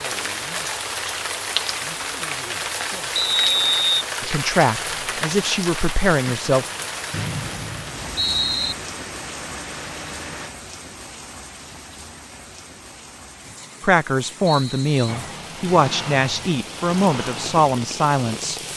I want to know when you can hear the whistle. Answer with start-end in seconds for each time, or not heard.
3.1-3.8, 7.1-8.8, 14.4-14.9.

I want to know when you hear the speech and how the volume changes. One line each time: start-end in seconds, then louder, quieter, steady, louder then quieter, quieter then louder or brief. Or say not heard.
4.2-6.7 brief
13.8-18.6 steady.